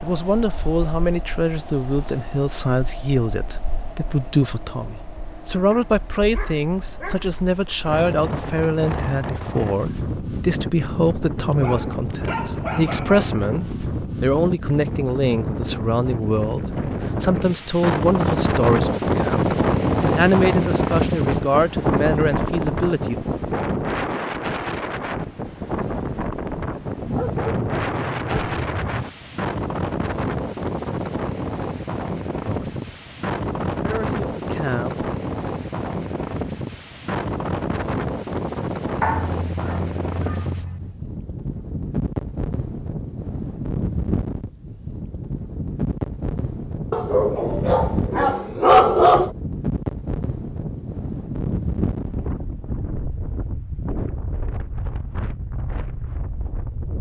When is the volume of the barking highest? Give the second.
49 s.